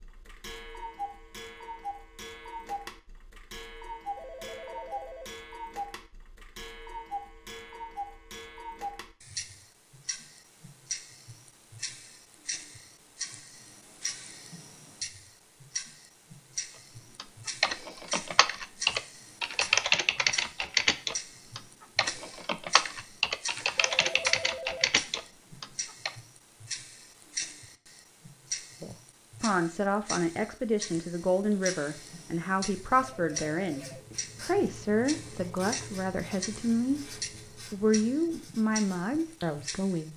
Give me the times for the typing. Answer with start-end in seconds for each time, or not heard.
17.1-26.1.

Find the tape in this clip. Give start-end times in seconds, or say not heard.
not heard.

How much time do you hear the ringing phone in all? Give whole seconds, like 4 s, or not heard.
3 s.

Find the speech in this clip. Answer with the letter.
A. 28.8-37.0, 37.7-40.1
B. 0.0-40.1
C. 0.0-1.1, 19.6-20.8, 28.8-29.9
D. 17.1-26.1
A.